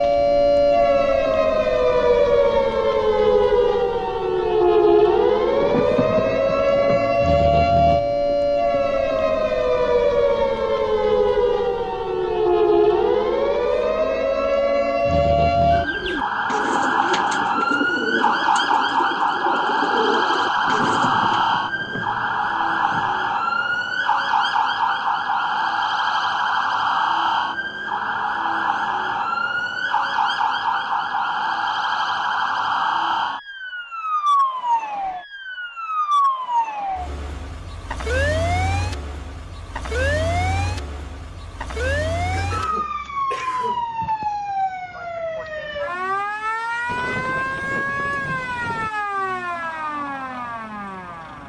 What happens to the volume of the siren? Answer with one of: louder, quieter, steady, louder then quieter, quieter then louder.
quieter.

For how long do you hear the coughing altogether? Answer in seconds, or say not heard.
2 s.